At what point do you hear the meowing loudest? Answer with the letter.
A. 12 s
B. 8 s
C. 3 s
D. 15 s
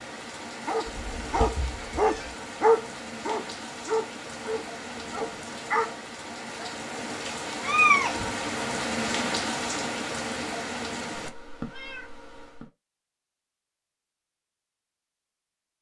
B.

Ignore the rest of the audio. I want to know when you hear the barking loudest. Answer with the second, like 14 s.
3 s.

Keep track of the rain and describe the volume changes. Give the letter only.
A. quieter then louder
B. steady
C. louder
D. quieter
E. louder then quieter
C.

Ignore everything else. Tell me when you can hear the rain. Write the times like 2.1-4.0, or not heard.
0.0-11.3.